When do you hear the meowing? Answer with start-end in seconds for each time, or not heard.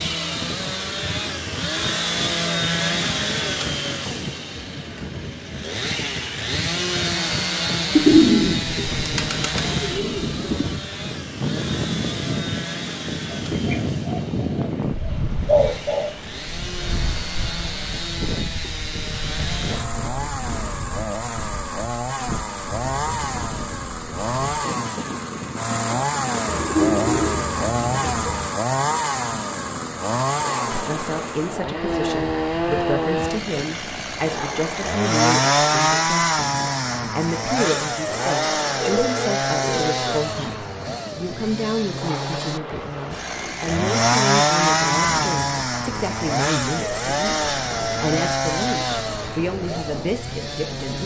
not heard.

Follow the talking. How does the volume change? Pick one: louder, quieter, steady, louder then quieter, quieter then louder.
steady.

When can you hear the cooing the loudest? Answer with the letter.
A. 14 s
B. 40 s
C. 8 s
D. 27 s
C.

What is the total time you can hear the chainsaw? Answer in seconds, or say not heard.
51 s.